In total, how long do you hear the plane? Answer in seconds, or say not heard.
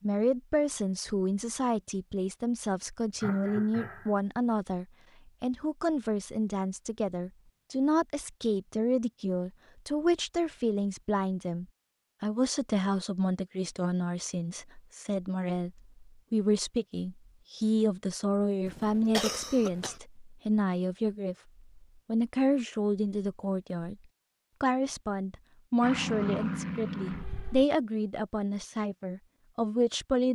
2 s.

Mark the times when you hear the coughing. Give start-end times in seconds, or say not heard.
3.2-4.2, 18.6-20.0.